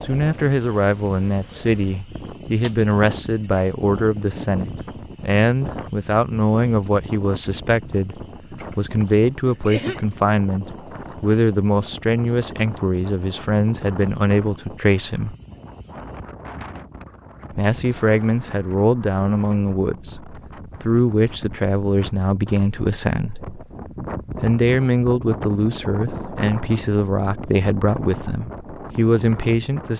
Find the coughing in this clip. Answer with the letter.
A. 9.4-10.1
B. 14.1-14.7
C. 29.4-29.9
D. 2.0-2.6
A.